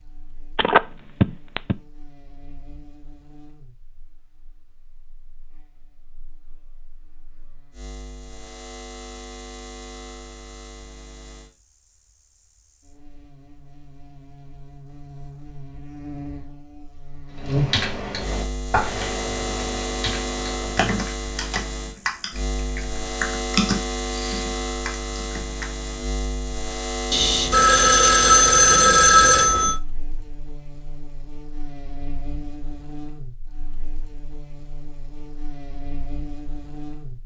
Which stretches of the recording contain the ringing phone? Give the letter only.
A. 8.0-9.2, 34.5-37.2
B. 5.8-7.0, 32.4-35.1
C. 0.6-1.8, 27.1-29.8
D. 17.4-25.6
C.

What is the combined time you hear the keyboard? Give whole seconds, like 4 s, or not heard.
8 s.